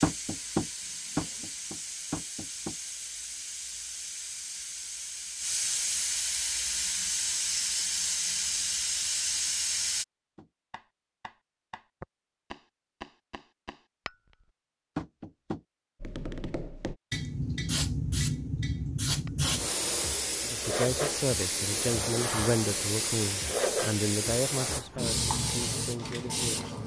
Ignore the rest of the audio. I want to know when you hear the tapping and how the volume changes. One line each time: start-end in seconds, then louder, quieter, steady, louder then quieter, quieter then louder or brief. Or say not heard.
0.0-2.8 brief
10.3-14.3 louder then quieter
14.9-19.3 quieter.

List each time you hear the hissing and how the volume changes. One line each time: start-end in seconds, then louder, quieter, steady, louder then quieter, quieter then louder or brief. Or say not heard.
0.0-10.1 louder
17.1-26.8 steady.